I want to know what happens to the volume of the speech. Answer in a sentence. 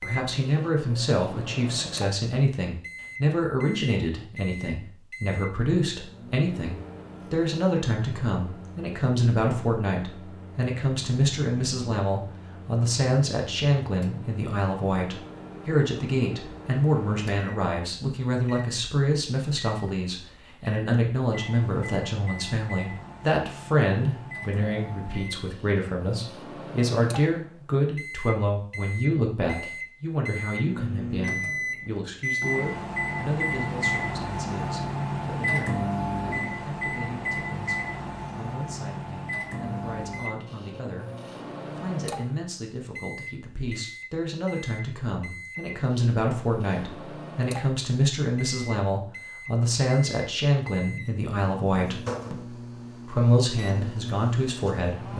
The loudness of the speech goes down, then up.